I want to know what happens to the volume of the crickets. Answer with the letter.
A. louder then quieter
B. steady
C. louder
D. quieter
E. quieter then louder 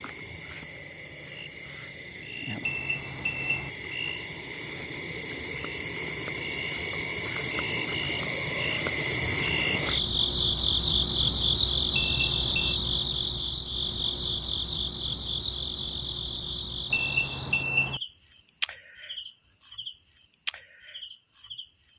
A.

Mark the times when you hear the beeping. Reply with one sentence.
The beeping can be heard from 2.6 to 3.7 s, from 11.9 to 12.8 s and from 16.9 to 18.0 s.